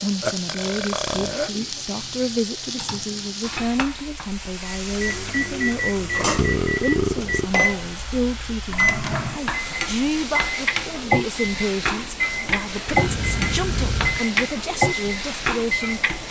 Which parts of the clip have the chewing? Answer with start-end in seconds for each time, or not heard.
not heard.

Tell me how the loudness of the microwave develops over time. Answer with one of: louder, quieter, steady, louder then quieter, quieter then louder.
steady.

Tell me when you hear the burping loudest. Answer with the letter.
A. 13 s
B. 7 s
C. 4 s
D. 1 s
B.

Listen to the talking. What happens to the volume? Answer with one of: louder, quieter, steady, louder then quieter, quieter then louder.
steady.